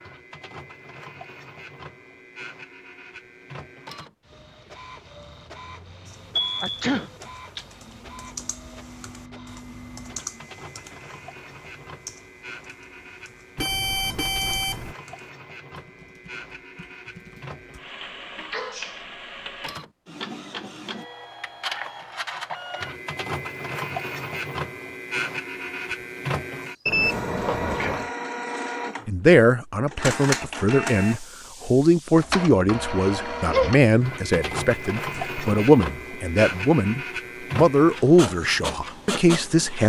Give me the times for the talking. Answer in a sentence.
The talking can be heard from 29.1 to 39.8 s.